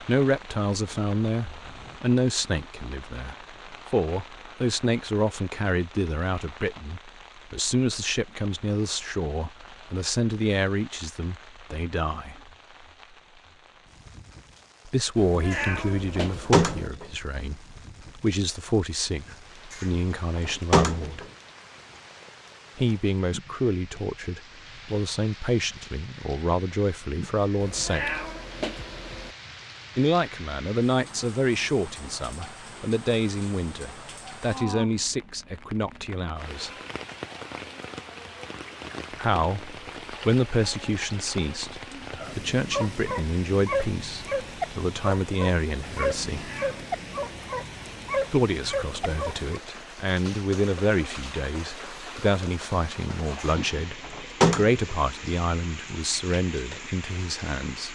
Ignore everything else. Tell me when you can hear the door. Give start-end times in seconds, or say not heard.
15.5-17.1, 19.7-21.2, 53.4-54.8.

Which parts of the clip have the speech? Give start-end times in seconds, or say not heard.
0.1-12.3, 14.8-21.2, 22.8-28.2, 29.9-36.7, 39.1-46.5, 48.3-57.9.